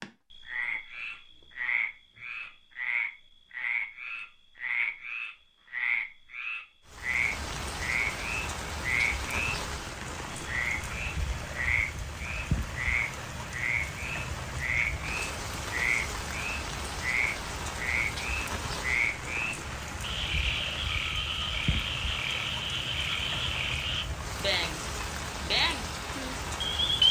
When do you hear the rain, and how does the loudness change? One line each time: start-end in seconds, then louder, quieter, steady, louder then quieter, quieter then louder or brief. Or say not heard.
6.8-27.0 steady.